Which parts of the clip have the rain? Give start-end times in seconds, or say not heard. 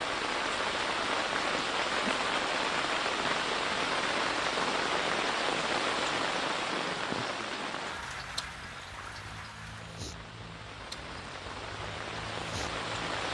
0.0-13.2.